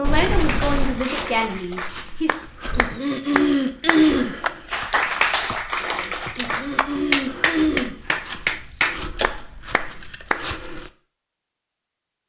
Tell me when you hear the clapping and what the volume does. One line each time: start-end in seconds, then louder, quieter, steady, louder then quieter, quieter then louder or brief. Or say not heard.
0.3-10.4 louder.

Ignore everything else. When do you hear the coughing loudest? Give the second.
4 s.